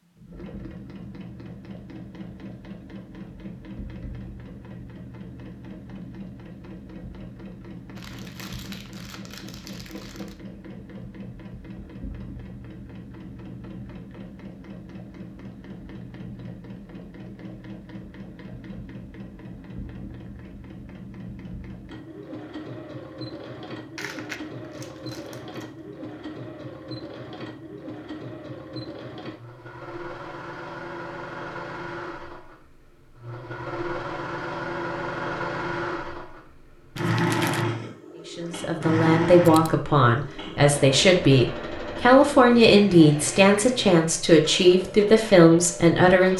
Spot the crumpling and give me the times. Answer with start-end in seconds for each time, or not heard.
8.0-10.3, 23.9-25.7, 37.0-37.6.